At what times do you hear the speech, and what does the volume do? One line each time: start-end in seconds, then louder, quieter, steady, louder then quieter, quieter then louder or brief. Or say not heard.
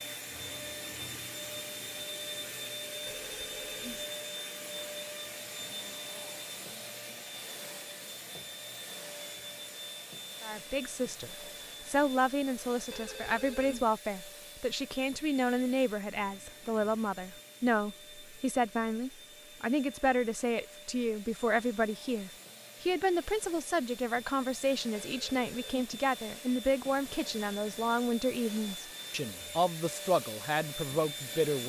10.4-31.6 steady.